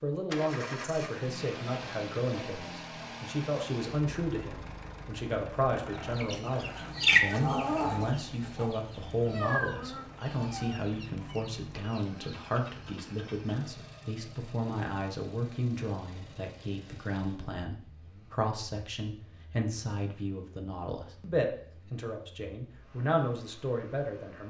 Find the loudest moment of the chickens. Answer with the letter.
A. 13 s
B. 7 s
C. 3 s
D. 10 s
B.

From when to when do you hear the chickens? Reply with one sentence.
You can hear the chickens from 5.9 to 12.4 s.